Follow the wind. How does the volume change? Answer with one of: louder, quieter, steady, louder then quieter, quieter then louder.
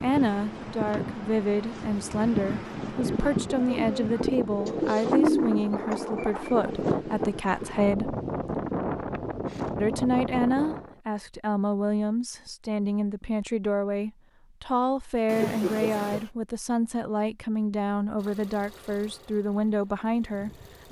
steady.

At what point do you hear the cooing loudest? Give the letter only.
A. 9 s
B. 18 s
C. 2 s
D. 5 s
D.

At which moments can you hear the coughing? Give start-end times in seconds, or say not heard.
15.2-16.3.